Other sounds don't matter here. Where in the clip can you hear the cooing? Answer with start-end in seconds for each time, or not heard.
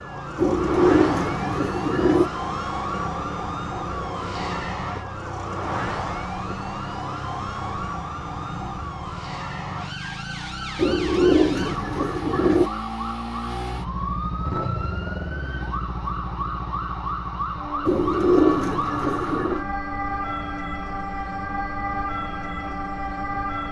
0.3-2.3, 10.8-12.7, 17.9-19.6.